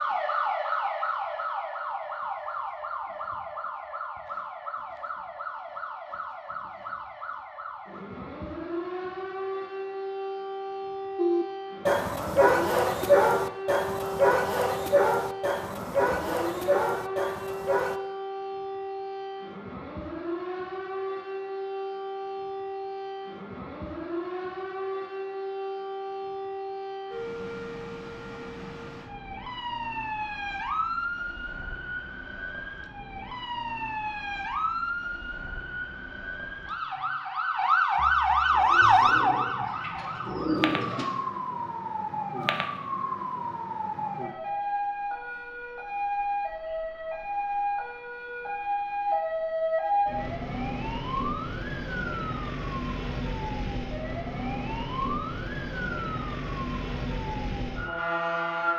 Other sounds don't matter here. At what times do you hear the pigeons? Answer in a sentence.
You can hear the pigeons from 38.5 to 41.0 s.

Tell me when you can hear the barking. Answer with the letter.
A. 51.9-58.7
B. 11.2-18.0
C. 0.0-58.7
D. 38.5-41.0
B.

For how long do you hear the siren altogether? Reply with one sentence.
You can hear the siren for 59 seconds altogether.